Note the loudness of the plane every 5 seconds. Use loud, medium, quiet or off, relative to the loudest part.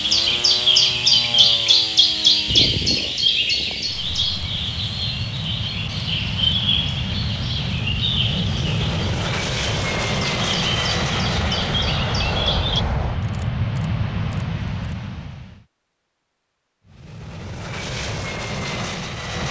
medium, loud, loud, medium.